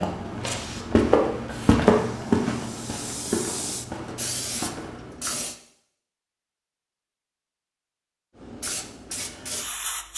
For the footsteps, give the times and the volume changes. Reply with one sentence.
You can hear the footsteps from 0.0 to 5.2 s, getting quieter.